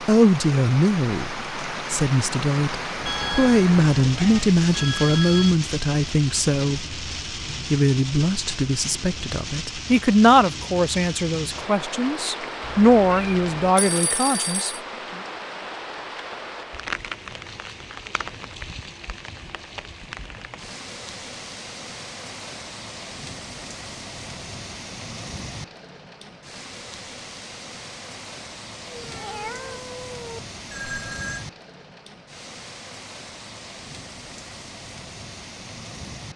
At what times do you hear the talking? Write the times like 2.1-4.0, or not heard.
0.1-7.0, 7.7-15.2.